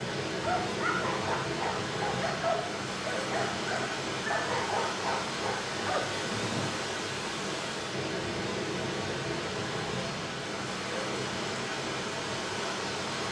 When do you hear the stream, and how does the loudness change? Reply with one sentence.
You can hear the stream from 0.0 to 13.2 s, at a steady volume.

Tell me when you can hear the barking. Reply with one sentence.
You can hear the barking from 0.3 to 6.8 s.